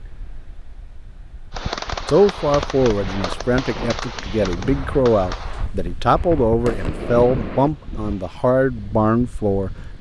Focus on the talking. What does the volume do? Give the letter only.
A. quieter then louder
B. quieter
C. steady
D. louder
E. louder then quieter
C.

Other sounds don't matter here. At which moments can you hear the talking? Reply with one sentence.
The talking can be heard from 2.1 to 9.7 s.